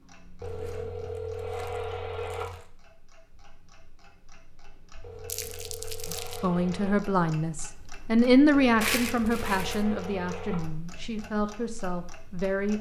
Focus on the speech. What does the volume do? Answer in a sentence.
The volume of the speech goes up, then down.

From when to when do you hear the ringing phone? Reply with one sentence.
You can hear the ringing phone from 0.4 to 2.5 s, from 5.0 to 7.0 s and from 8.5 to 10.7 s.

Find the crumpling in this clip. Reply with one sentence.
You can hear the crumpling from 0.4 to 2.7 s, from 5.3 to 6.4 s and from 8.8 to 9.8 s.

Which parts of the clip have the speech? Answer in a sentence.
You can hear the speech from 6.1 to 12.7 s.